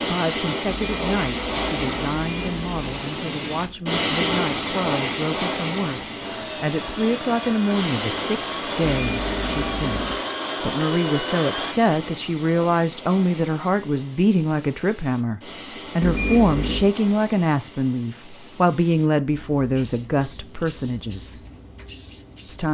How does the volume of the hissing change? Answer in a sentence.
The loudness of the hissing goes down.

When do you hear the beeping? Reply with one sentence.
You can hear the beeping from 0.7 to 2.9 s, from 8.8 to 10.2 s and from 16.0 to 16.9 s.